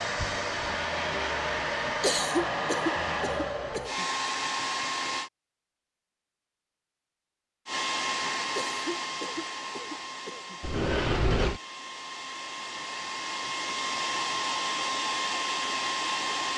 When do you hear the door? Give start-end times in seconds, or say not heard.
10.6-11.6.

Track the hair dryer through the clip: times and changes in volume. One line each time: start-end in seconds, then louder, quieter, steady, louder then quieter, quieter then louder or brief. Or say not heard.
0.0-5.3 steady
7.7-16.5 quieter then louder.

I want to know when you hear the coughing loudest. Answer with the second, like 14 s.
2 s.